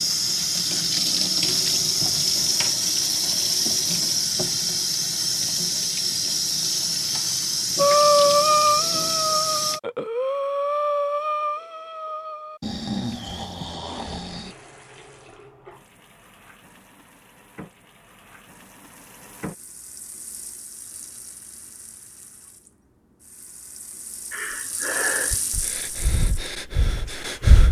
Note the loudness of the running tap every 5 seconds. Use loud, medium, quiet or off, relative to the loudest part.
loud, loud, quiet, quiet, quiet, quiet.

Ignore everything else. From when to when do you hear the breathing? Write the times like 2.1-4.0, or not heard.
7.8-14.6, 24.3-27.6.